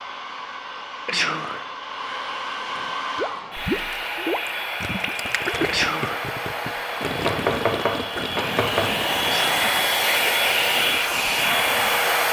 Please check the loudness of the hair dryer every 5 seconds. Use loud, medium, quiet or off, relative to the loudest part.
medium, medium, loud.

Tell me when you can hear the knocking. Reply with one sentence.
The knocking can be heard from 7.2 to 8.9 s.